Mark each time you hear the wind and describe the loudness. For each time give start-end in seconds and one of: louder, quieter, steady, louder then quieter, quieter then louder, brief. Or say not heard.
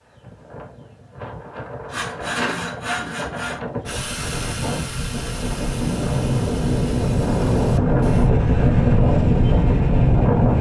0.0-10.5 louder.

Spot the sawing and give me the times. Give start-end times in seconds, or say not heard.
1.9-8.3.